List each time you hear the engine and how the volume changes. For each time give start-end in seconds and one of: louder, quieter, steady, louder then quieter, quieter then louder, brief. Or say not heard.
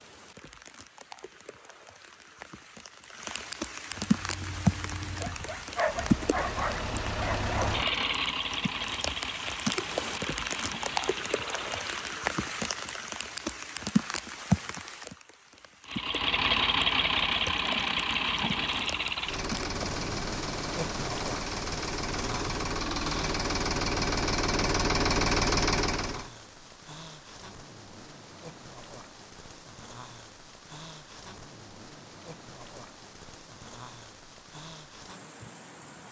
4.0-12.2 louder then quieter
15.8-26.3 quieter then louder.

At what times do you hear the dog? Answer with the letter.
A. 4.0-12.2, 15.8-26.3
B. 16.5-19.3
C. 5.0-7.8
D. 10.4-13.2
C.